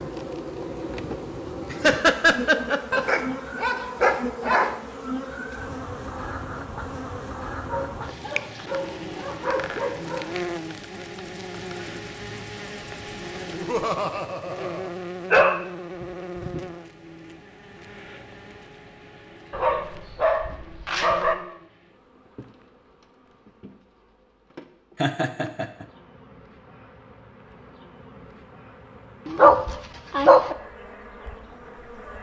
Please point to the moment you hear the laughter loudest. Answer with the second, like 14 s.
2 s.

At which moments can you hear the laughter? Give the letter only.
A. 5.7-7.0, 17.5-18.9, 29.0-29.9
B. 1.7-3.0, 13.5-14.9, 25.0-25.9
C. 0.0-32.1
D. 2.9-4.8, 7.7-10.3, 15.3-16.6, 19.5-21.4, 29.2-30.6
B.